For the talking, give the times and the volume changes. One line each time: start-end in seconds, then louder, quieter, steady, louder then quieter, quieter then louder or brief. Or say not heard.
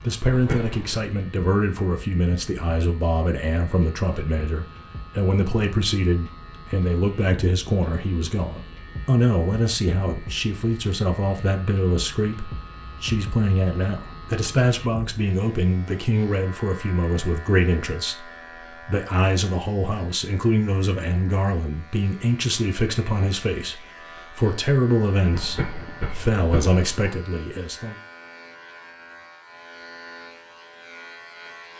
0.0-27.9 steady.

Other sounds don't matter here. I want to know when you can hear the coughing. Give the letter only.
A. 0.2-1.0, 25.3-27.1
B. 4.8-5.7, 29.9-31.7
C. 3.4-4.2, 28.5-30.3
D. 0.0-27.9
A.